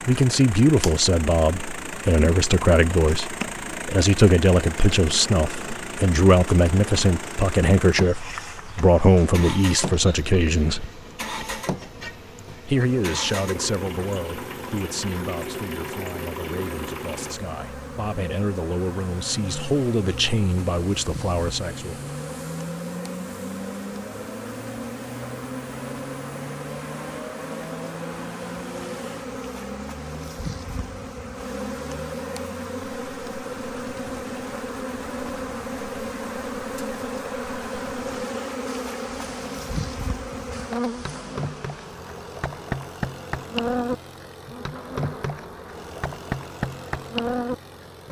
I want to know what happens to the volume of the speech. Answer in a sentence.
The volume of the speech goes down, then up.